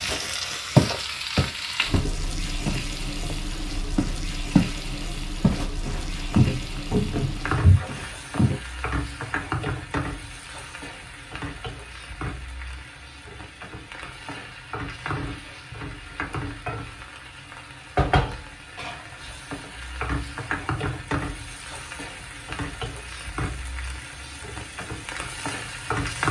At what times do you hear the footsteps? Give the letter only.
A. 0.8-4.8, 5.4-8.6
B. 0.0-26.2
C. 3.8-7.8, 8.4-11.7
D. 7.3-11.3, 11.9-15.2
A.